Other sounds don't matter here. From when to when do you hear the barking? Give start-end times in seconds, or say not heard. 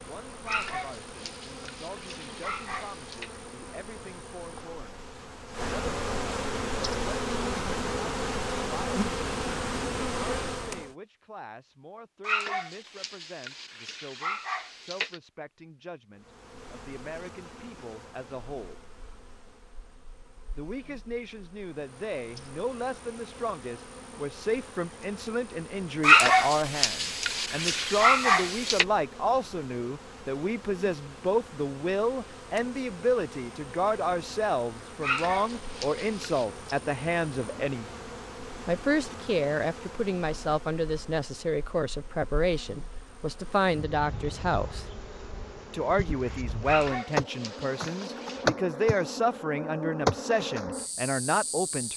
0.5-3.3, 12.2-15.2, 26.0-28.9, 35.0-36.5, 46.6-48.5.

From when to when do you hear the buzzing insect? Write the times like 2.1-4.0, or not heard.
0.0-10.9, 16.1-51.9.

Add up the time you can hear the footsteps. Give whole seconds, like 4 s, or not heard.
not heard.